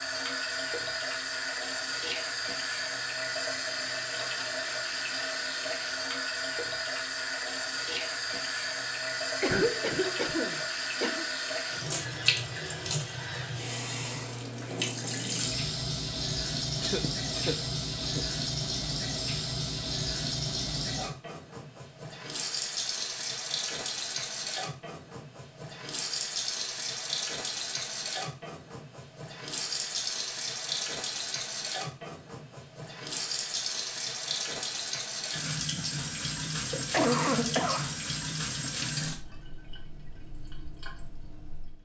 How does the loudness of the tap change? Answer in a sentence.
The volume of the tap stays about the same.